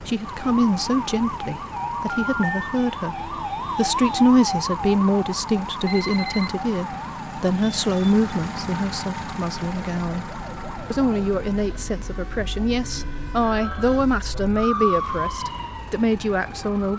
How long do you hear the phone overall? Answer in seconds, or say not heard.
2 s.